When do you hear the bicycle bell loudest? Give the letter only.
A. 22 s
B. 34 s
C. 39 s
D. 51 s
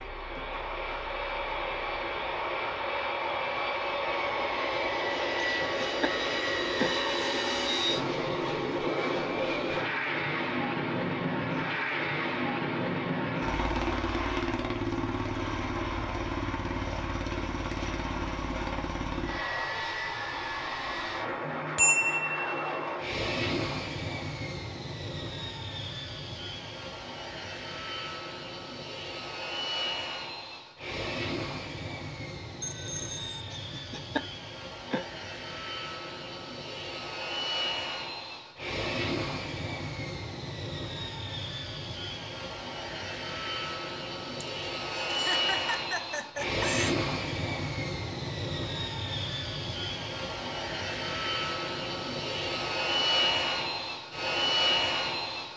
A.